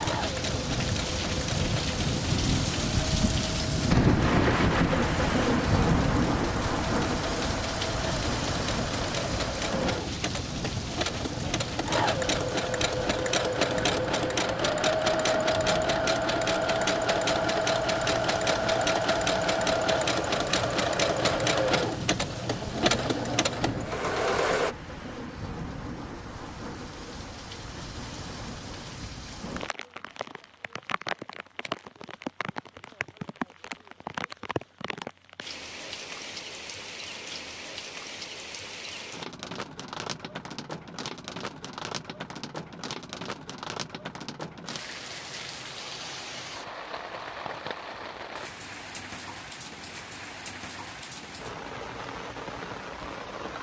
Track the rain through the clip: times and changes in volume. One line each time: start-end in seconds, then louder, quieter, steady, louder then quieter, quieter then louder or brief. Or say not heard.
0.0-53.5 quieter.